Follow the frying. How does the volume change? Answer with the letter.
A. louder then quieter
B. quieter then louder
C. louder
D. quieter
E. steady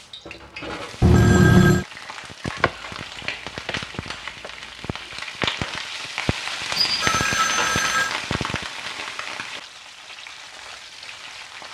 A.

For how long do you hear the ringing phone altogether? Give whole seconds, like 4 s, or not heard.
2 s.